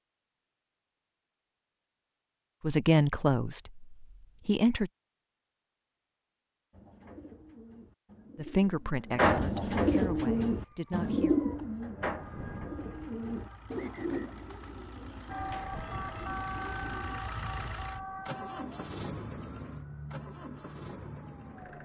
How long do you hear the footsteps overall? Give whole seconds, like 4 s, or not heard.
not heard.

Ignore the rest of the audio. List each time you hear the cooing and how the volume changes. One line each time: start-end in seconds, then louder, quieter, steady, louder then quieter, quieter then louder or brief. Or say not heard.
6.7-17.2 louder then quieter.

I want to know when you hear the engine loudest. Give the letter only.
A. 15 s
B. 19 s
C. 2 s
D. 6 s
B.